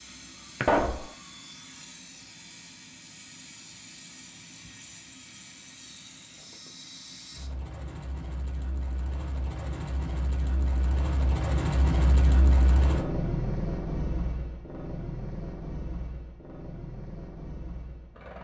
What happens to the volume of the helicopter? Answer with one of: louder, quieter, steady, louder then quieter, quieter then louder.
louder then quieter.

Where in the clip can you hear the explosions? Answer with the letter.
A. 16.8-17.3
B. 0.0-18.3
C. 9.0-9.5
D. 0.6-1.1
D.